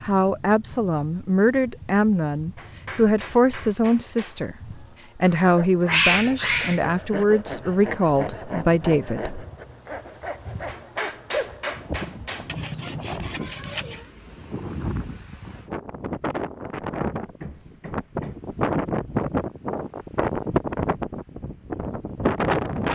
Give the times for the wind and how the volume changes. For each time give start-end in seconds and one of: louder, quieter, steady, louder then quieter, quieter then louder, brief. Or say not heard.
0.0-22.8 louder.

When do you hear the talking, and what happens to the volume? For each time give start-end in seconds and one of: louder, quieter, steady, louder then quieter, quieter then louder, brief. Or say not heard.
0.0-9.3 steady.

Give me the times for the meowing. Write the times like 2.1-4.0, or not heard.
5.2-6.8.